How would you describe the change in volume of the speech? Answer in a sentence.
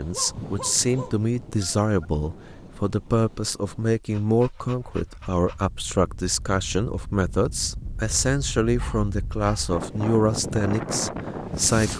The volume of the speech stays about the same.